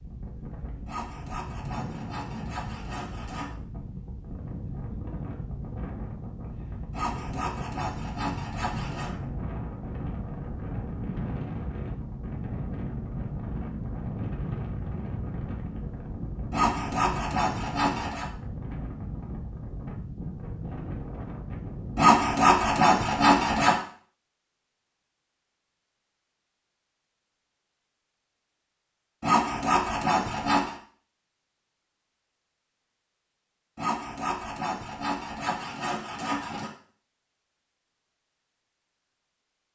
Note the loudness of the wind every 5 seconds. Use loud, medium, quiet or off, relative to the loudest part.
medium, loud, loud, loud, loud, off, off, off.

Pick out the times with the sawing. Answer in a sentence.
The sawing can be heard from 0.8 to 3.5 s, from 6.9 to 9.2 s, from 16.5 to 18.2 s, from 21.9 to 23.8 s, from 29.2 to 30.8 s and from 33.8 to 36.7 s.